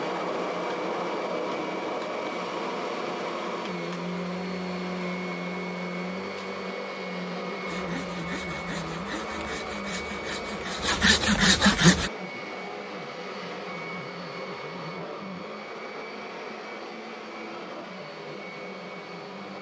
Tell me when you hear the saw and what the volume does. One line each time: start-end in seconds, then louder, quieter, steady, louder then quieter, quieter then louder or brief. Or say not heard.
7.7-12.1 louder.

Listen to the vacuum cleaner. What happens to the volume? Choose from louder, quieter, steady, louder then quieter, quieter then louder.
quieter.